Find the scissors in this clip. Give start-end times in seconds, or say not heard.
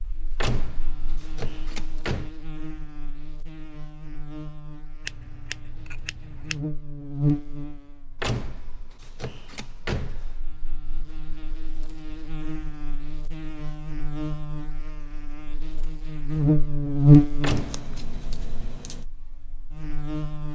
5.0-6.7, 17.4-19.1.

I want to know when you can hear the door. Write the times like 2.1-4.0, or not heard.
0.4-2.3, 8.2-10.3, 17.4-17.9.